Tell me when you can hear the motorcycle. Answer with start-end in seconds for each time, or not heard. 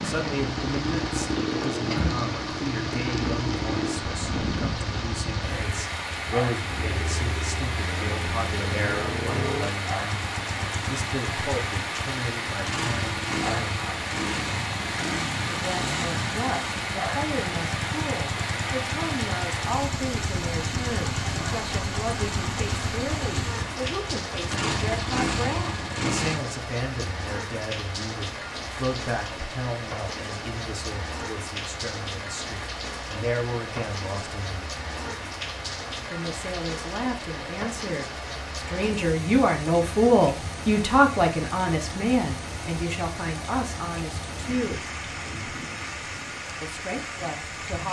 0.0-26.4.